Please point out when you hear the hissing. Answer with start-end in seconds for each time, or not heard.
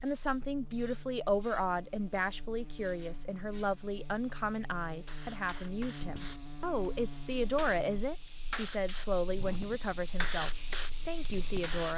0.0-11.9.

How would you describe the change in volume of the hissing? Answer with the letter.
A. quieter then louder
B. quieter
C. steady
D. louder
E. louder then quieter
D.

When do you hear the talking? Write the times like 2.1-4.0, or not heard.
0.0-11.9.